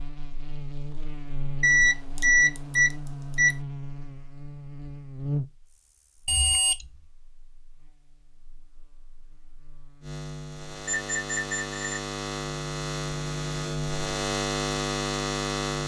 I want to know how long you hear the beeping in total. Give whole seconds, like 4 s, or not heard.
4 s.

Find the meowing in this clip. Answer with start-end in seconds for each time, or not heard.
not heard.